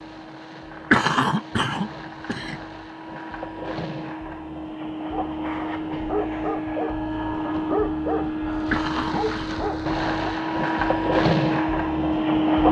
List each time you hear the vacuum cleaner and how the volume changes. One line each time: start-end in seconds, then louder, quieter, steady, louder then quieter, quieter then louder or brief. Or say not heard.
0.0-12.6 louder.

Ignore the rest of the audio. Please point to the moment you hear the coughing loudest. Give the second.
1 s.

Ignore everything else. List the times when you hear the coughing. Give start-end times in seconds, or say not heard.
0.9-2.5, 8.7-9.5.